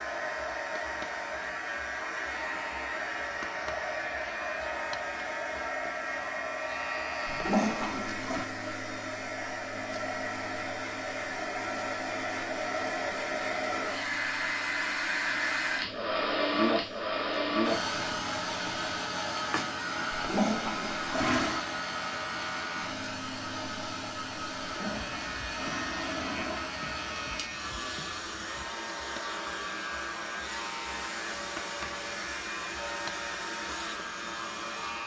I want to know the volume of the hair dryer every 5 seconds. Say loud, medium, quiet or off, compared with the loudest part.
medium, medium, loud, loud, medium, medium, medium.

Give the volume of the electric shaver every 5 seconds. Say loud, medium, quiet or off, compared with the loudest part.
loud, loud, medium, quiet, loud, loud, loud.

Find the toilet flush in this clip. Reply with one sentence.
The toilet flush can be heard from 7.2 to 8.5 s, from 20.1 to 21.6 s and from 24.6 to 26.7 s.